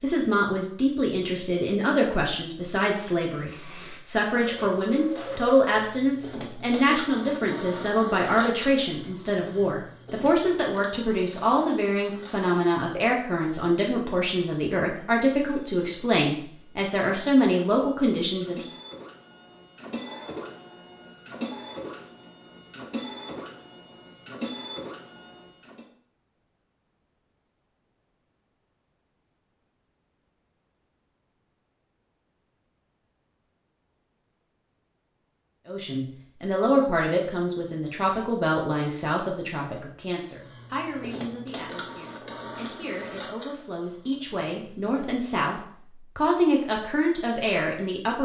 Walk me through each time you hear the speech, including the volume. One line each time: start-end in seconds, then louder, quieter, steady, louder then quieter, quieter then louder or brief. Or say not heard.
0.0-18.6 steady
35.6-48.2 quieter then louder.